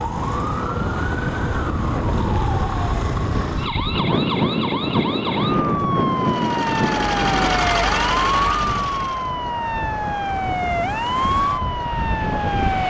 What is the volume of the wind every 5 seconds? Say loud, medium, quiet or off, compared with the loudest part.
loud, loud, medium.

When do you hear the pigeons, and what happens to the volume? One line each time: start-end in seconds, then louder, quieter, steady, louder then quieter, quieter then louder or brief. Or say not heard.
not heard.